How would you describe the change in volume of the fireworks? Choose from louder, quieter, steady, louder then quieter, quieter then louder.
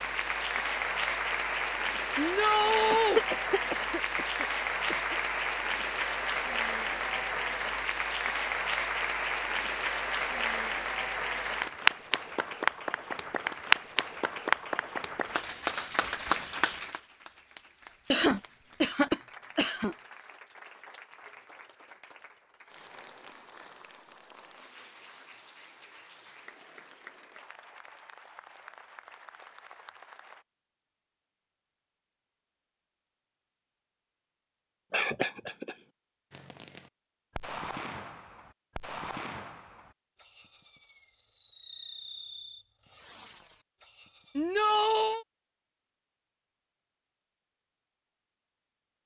quieter.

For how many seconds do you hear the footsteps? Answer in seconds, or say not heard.
not heard.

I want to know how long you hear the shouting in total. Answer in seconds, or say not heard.
2 s.